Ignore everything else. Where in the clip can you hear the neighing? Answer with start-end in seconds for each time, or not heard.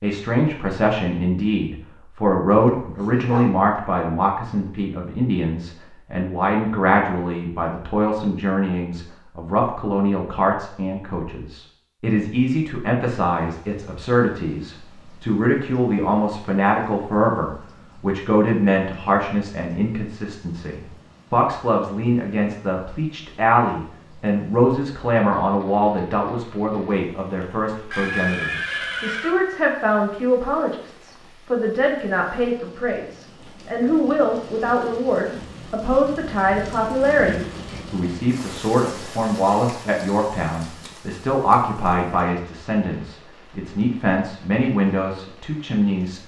27.9-29.4.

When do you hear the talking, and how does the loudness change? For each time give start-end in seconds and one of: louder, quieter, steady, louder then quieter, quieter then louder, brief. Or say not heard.
0.0-46.2 steady.